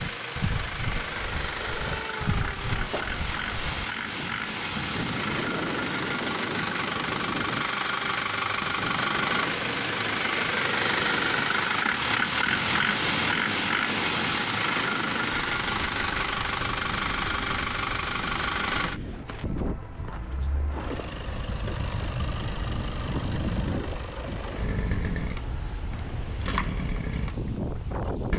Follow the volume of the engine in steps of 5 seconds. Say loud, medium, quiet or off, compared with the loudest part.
medium, loud, loud, loud, medium, medium.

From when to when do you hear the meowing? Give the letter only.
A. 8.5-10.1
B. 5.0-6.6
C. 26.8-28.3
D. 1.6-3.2
D.